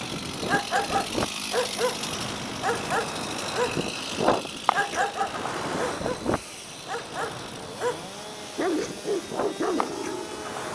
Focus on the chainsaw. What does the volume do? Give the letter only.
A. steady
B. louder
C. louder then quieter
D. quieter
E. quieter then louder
D.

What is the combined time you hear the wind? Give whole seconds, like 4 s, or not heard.
11 s.